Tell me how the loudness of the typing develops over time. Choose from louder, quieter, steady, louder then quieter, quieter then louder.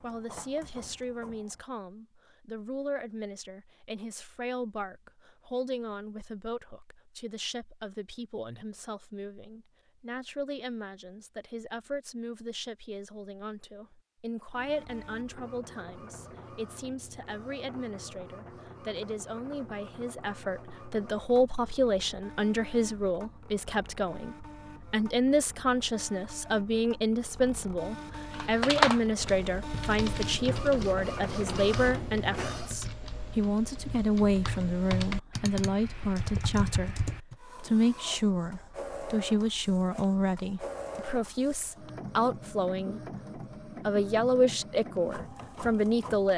quieter then louder.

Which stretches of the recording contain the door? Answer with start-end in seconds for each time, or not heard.
not heard.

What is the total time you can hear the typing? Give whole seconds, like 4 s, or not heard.
9 s.